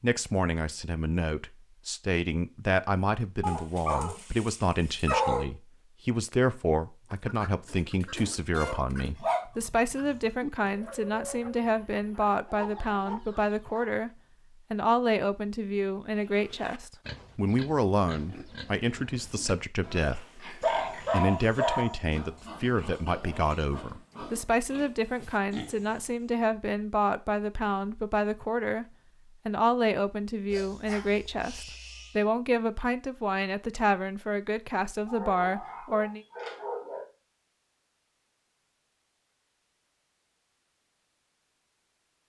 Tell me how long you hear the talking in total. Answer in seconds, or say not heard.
35 s.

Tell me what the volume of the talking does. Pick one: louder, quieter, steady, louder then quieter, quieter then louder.
steady.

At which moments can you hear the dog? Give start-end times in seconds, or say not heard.
3.4-5.5, 8.6-9.4, 10.0-10.7, 20.6-22.0, 30.5-32.2, 35.0-37.0.